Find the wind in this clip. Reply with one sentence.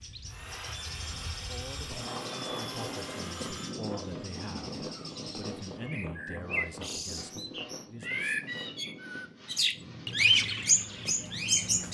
The wind can be heard from 0.0 to 11.8 s.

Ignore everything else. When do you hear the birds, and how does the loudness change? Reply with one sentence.
You can hear the birds from 0.0 to 11.9 s, getting louder.